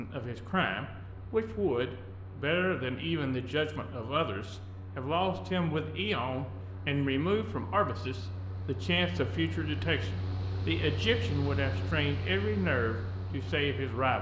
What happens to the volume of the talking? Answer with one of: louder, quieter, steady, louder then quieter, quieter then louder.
steady.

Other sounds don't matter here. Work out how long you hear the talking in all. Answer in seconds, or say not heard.
14 s.